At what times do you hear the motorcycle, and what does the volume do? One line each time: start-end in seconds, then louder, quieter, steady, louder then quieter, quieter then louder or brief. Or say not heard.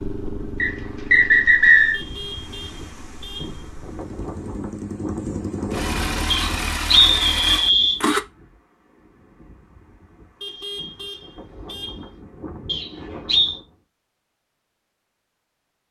0.0-8.2 quieter then louder.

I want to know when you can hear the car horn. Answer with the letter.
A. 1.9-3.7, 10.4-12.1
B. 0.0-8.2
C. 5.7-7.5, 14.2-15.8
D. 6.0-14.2
A.